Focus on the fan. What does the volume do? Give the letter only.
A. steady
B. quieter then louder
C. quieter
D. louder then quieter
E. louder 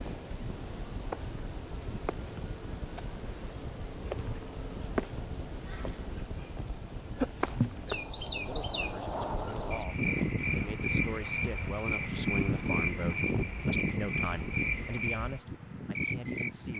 E.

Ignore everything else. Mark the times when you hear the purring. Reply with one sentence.
The purring can't be heard in this clip.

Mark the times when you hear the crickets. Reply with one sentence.
You can hear the crickets from 0.0 to 16.7 s.